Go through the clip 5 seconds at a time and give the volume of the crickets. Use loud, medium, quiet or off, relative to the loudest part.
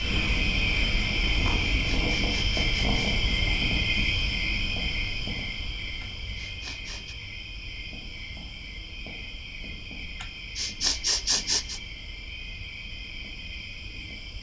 loud, medium, quiet.